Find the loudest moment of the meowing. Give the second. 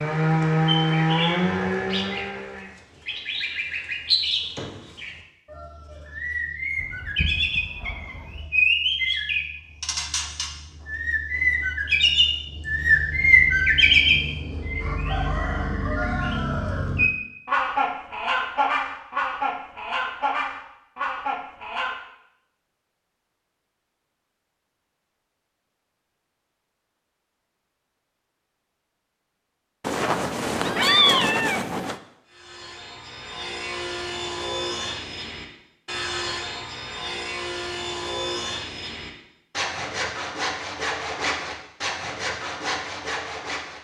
31 s.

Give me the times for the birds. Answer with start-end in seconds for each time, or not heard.
0.0-22.0.